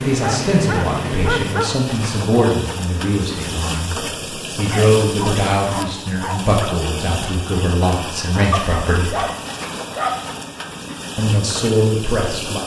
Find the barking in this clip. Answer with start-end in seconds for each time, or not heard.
0.1-1.8, 4.7-6.7, 8.5-10.3.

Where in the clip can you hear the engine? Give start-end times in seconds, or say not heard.
0.0-1.7.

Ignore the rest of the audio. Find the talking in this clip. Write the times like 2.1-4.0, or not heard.
0.0-9.2, 11.2-12.6.